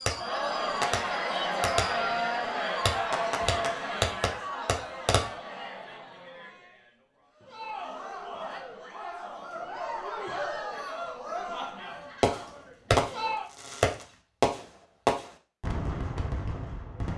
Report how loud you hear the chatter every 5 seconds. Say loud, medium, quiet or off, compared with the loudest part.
loud, medium, medium, off.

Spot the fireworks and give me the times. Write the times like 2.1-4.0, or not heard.
0.0-5.2, 12.2-17.1.